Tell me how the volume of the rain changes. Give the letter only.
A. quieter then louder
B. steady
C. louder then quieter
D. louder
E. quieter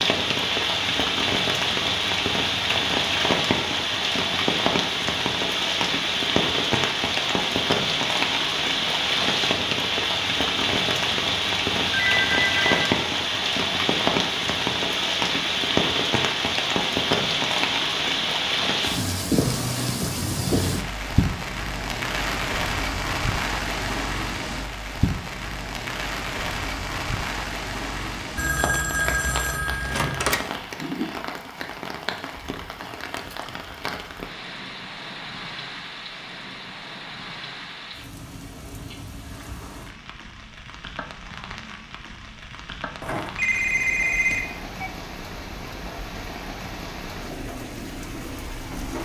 E.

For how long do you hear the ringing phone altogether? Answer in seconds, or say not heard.
5 s.